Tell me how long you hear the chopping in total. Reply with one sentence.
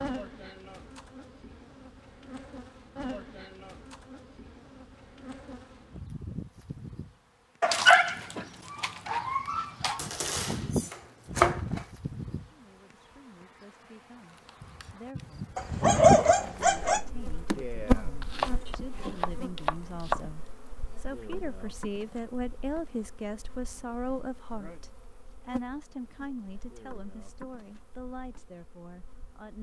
The chopping can be heard for 4 seconds in total.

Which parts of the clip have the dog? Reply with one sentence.
The dog can be heard from 7.6 to 10.0 s and from 15.6 to 17.0 s.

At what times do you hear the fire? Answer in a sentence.
The fire can't be heard in this clip.